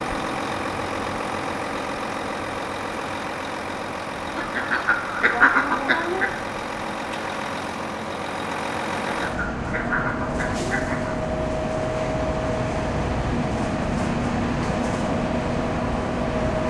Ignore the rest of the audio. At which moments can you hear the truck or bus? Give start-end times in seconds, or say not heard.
0.0-16.6.